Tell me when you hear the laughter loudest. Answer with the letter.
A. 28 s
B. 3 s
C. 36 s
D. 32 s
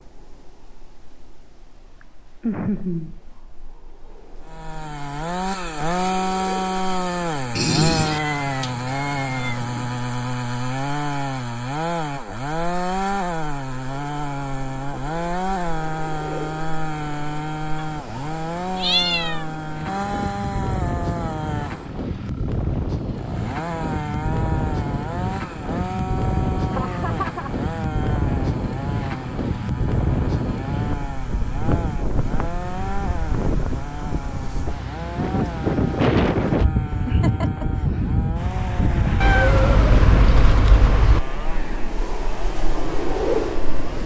B.